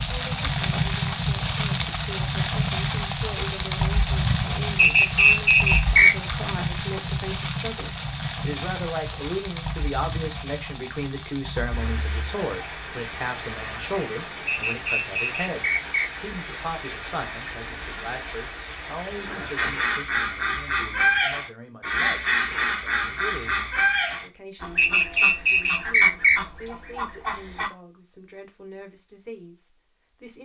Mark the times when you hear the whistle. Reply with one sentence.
You can hear the whistle from 4.8 to 6.2 s, from 14.4 to 16.1 s and from 24.8 to 26.4 s.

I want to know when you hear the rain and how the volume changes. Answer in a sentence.
The rain can be heard from 0.0 to 19.8 s, getting quieter.